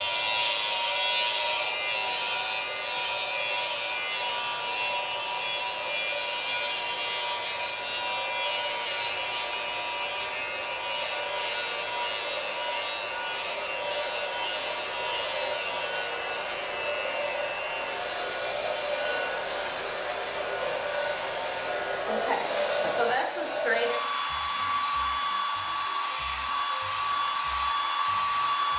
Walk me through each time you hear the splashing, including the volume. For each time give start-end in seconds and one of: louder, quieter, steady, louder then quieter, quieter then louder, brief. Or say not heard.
not heard.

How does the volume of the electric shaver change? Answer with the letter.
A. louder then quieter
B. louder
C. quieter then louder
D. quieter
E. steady
D.